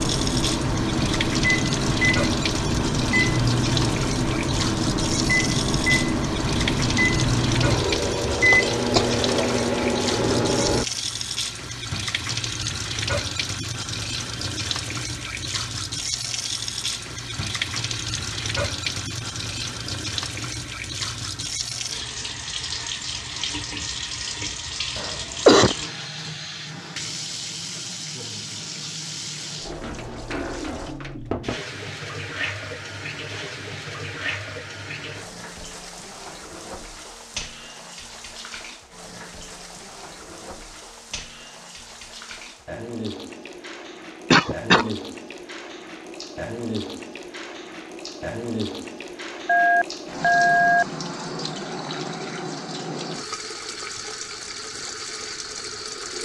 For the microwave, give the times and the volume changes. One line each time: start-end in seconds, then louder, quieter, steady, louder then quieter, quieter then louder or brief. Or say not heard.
0.0-10.8 steady.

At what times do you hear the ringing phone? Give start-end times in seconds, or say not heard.
49.5-50.9.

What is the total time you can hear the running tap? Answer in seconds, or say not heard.
56 s.